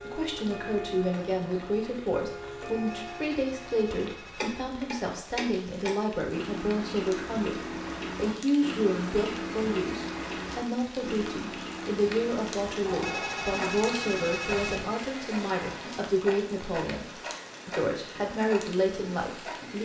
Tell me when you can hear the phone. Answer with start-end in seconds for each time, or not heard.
2.7-4.7, 12.8-14.8.